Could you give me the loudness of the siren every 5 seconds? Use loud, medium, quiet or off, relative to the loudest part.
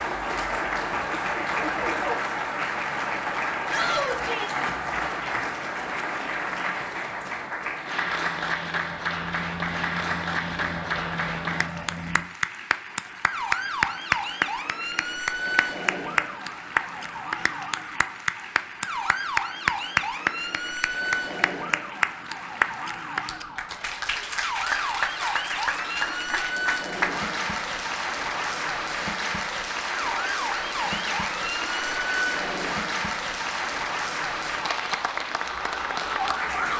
loud, off, loud, loud, loud, loud, loud, loud.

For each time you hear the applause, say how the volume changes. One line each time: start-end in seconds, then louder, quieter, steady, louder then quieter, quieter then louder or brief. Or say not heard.
0.0-36.7 steady.